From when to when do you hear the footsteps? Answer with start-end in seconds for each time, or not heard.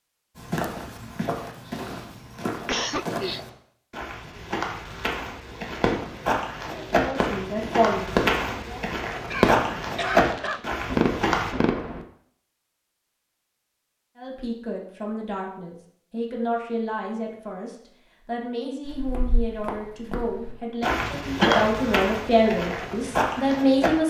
0.3-11.6, 18.9-24.0.